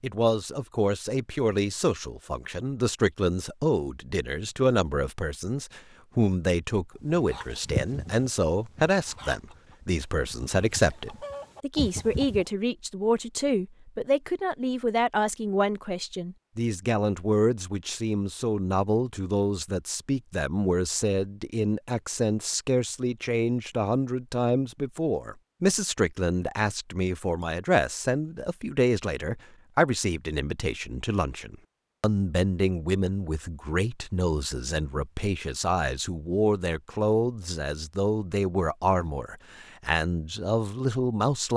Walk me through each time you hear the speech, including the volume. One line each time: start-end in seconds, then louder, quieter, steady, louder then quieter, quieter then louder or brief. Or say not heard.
0.0-41.5 steady.